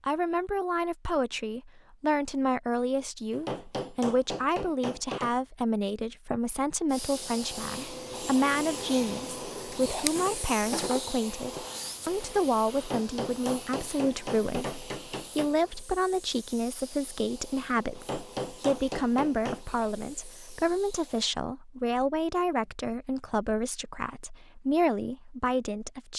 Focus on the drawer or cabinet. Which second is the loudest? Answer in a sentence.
The loudest moment of the drawer or cabinet is at 10 seconds.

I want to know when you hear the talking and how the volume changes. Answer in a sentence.
The talking can be heard from 0.0 to 26.1 s, at a steady volume.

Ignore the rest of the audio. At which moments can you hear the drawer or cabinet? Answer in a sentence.
The drawer or cabinet can be heard from 9.7 to 11.9 s.